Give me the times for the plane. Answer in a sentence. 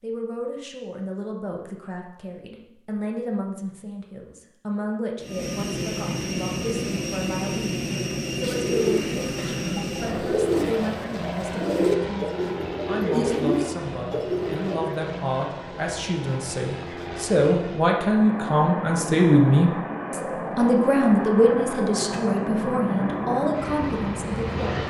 The plane can be heard from 5.2 to 24.8 s.